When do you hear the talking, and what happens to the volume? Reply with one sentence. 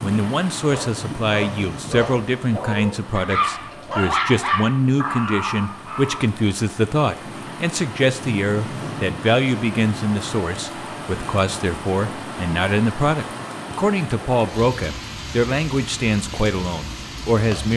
The talking can be heard from 0.0 to 17.7 s, at a steady volume.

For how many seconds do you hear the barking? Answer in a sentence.
You can hear the barking for 6 seconds altogether.